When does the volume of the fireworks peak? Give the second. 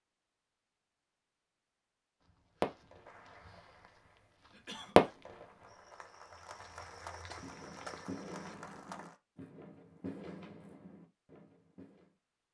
5 s.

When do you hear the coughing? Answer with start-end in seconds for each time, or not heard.
4.5-5.2.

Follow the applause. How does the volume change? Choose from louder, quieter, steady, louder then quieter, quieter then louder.
louder.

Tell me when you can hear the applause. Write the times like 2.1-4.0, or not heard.
3.0-9.2.